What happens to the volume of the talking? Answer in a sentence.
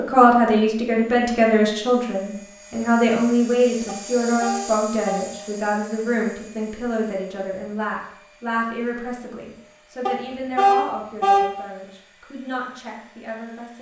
The volume of the talking goes down.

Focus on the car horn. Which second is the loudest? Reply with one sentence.
The loudest moment of the car horn is at 11 seconds.